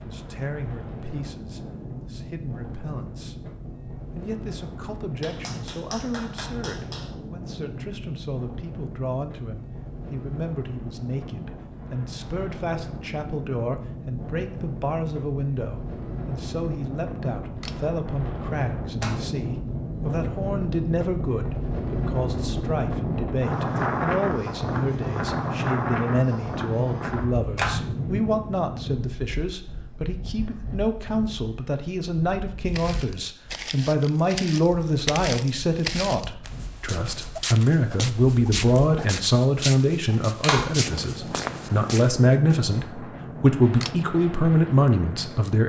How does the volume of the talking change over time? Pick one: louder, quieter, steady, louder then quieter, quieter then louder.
louder.